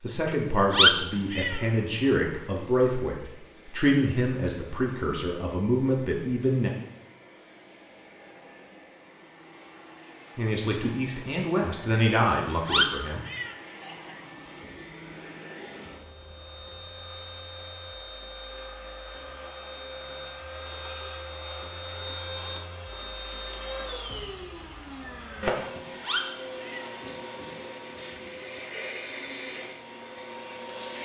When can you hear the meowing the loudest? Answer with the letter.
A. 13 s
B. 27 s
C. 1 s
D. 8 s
C.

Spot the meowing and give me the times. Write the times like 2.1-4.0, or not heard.
0.7-1.6, 12.2-13.5, 26.0-26.9.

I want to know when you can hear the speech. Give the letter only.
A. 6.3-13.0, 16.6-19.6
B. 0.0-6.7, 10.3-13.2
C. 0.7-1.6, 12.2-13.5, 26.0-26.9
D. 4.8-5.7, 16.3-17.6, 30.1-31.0
B.